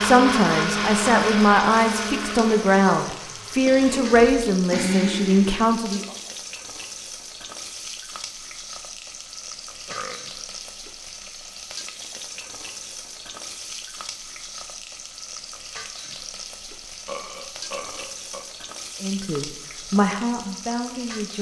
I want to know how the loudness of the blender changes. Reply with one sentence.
The loudness of the blender goes down, then up.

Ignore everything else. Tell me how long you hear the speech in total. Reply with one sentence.
You can hear the speech for 8 seconds altogether.